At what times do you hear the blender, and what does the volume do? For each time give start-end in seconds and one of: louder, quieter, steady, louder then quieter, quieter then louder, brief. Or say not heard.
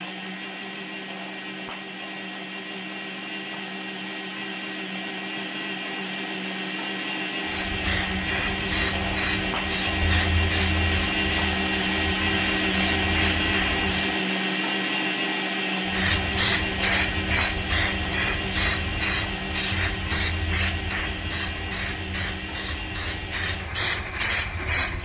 0.0-25.0 louder then quieter.